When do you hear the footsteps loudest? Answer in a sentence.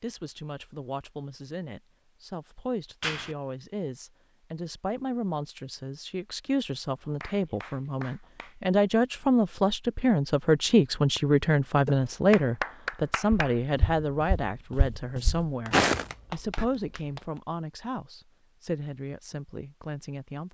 The loudest moment of the footsteps is at 16 seconds.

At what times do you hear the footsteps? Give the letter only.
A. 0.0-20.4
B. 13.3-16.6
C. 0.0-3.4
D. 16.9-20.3
B.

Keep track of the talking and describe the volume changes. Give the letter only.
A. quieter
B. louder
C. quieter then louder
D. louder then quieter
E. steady
D.